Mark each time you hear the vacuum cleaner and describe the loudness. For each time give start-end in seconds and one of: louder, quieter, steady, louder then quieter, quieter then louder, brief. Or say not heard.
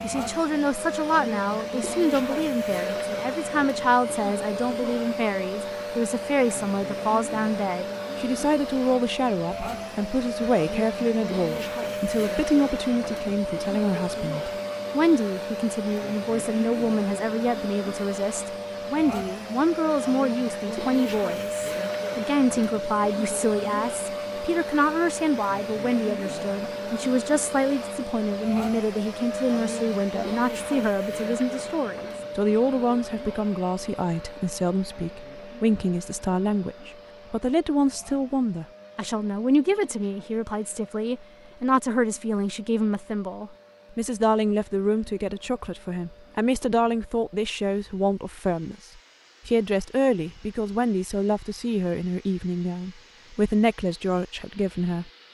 0.0-55.2 quieter.